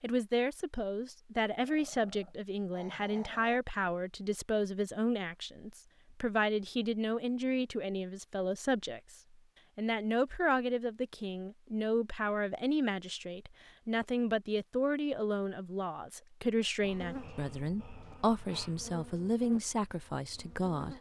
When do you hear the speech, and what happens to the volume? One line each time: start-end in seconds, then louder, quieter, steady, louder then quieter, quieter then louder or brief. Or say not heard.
0.0-9.2 steady
9.8-20.9 steady.